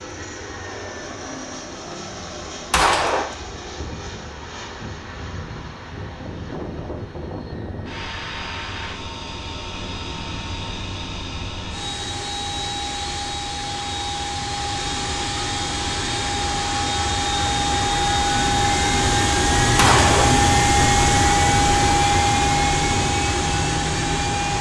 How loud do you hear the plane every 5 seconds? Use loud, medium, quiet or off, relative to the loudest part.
quiet, quiet, medium, loud, loud.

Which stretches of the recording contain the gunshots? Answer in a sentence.
The gunshots can be heard from 2.7 to 3.3 s and from 19.8 to 20.4 s.